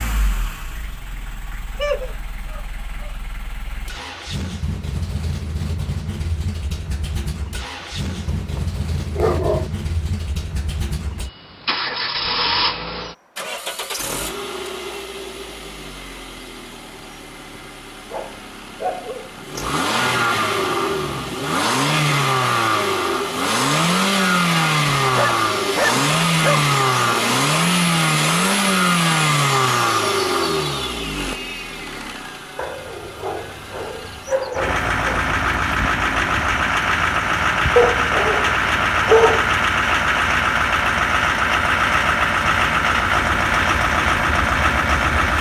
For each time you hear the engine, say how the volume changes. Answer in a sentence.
The engine can be heard from 0.0 to 45.3 s, getting louder.